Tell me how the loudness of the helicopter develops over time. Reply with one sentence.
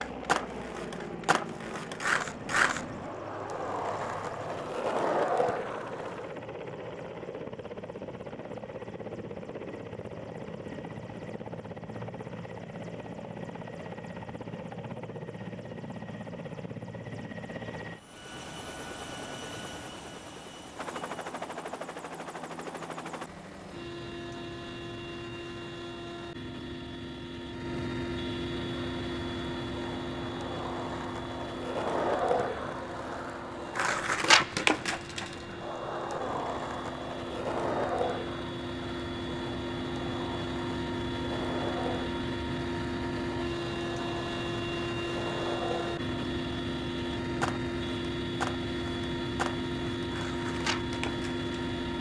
The loudness of the helicopter goes up.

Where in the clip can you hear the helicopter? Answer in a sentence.
The helicopter can be heard from 0.0 to 51.9 s.